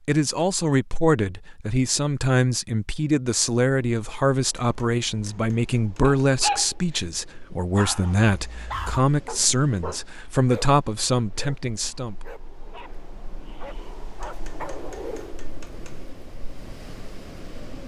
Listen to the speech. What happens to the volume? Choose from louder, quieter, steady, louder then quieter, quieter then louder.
steady.